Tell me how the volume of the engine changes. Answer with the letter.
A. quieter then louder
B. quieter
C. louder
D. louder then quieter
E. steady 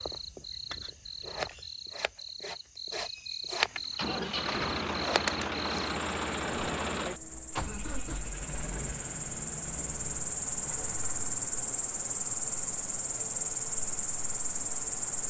B.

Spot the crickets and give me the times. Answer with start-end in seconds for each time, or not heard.
0.0-15.2.